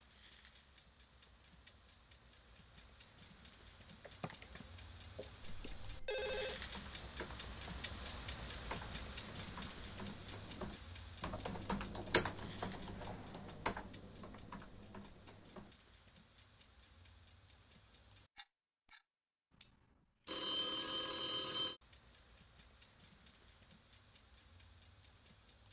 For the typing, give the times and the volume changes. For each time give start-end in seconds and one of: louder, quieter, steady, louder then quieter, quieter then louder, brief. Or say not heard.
4.0-15.7 louder then quieter.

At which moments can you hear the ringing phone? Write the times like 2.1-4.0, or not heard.
5.4-6.6, 20.2-21.8.